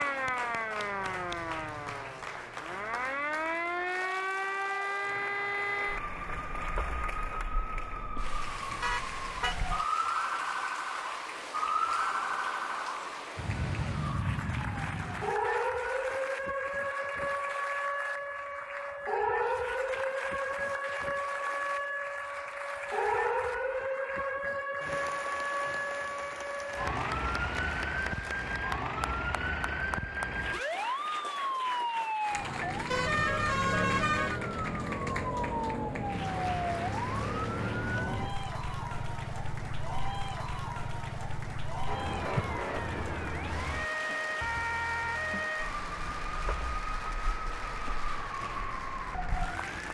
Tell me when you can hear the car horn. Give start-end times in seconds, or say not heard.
8.8-9.6, 32.9-34.4.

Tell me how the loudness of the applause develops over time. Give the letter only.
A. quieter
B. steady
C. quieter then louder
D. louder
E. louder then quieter
B.